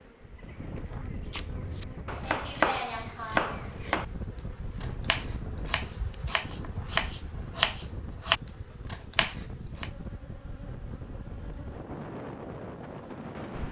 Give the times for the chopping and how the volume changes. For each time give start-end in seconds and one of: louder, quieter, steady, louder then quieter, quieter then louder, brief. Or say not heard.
1.3-9.9 quieter then louder.